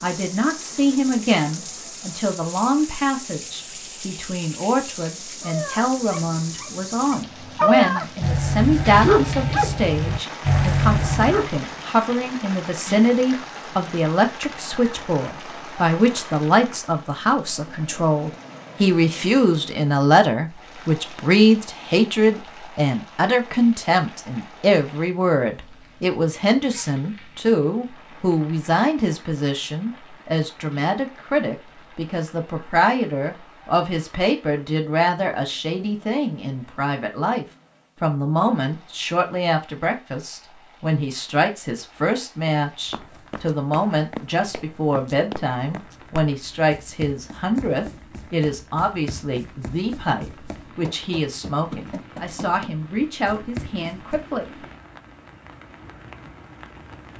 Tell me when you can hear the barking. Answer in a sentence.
The barking can be heard from 5.5 to 11.5 s.